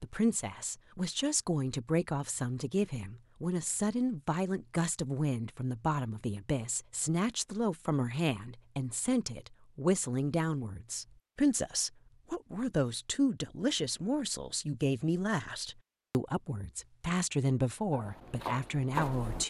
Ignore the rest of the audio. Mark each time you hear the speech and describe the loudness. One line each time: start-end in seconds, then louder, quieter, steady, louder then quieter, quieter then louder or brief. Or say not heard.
0.0-19.4 steady.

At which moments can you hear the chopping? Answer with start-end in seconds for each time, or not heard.
17.9-19.4.